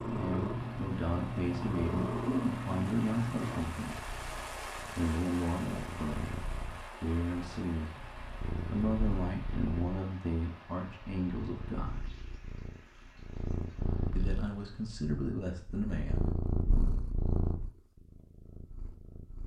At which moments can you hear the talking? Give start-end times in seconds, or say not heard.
0.0-4.1, 4.9-12.1, 14.2-16.3.